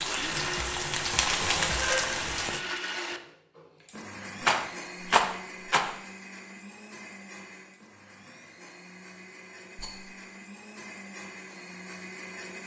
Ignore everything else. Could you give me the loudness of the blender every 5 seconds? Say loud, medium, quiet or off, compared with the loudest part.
loud, medium, medium.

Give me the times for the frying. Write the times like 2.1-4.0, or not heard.
0.0-2.6.